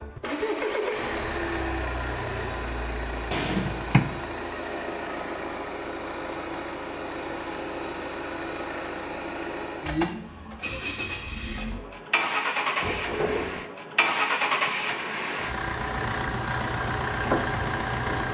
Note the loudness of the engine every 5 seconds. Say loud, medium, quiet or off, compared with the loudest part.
loud, medium, loud, loud.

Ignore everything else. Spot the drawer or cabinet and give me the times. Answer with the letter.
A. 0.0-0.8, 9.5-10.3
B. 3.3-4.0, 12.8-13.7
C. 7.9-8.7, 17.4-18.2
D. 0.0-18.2
B.